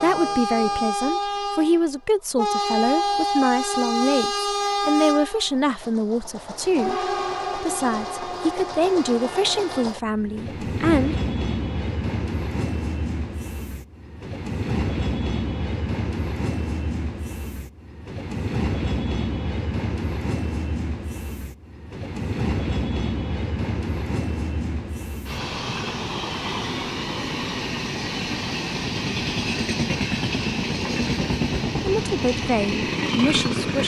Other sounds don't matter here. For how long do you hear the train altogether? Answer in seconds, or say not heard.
34 s.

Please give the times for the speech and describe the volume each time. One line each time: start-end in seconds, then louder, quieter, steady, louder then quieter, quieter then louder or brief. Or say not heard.
0.0-11.2 steady
31.9-33.8 brief.